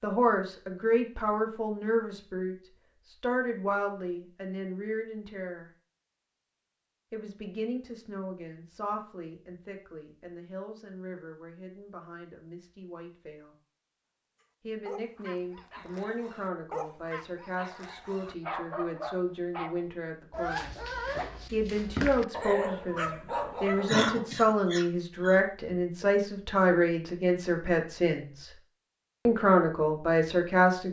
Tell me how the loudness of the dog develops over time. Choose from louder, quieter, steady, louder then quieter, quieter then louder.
louder.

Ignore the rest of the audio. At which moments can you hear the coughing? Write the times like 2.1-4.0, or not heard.
23.9-25.4.